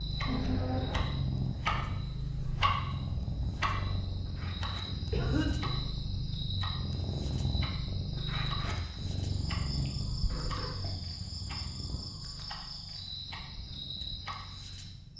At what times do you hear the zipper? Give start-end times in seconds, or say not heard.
4.2-5.2, 8.2-9.1.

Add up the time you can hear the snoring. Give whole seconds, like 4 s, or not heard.
not heard.